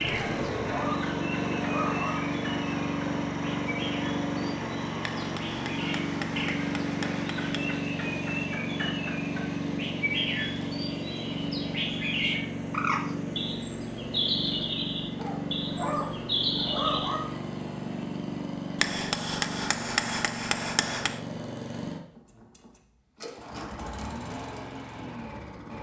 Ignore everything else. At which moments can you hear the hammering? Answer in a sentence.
You can hear the hammering from 5.0 to 7.7 s and from 18.8 to 21.2 s.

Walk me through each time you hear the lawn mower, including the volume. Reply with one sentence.
You can hear the lawn mower from 0.0 to 25.7 s, getting quieter.